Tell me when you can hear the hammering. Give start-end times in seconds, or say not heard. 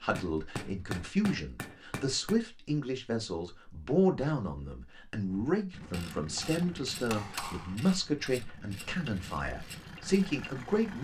0.1-2.4, 5.8-7.8.